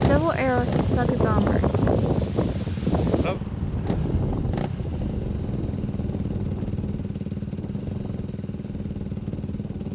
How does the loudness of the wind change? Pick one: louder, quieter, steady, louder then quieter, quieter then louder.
quieter.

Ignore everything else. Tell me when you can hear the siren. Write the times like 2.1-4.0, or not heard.
not heard.